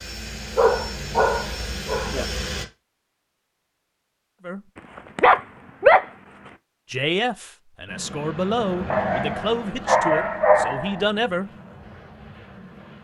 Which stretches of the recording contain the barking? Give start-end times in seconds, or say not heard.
0.6-2.2, 4.8-6.5, 8.9-11.1.